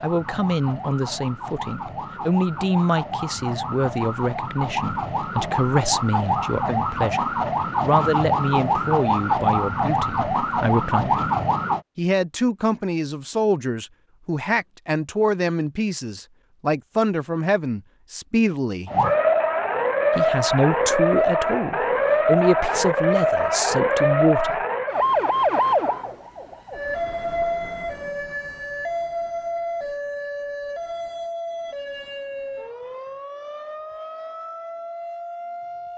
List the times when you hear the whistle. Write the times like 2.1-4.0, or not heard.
not heard.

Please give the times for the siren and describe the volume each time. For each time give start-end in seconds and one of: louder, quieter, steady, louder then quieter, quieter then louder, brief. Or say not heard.
0.0-11.8 louder
18.9-35.9 quieter.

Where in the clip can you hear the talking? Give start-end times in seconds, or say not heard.
0.0-11.2, 11.9-18.9, 20.1-24.6.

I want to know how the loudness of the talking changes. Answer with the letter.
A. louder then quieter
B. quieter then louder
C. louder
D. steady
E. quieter
D.